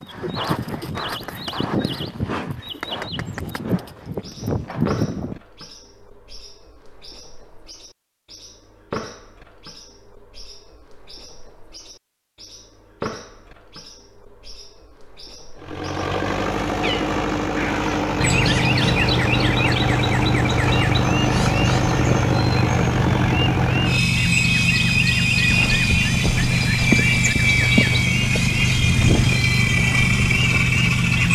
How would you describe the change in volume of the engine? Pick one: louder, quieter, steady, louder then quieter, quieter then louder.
steady.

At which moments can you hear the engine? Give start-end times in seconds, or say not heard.
15.6-31.3.